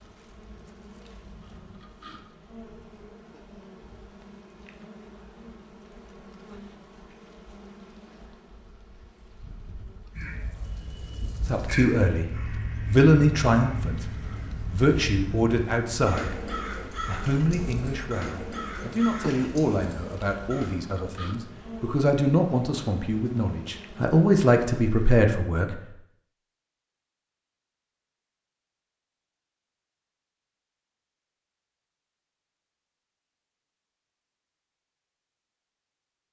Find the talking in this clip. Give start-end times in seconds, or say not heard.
11.4-12.3, 12.9-14.1, 14.7-25.8.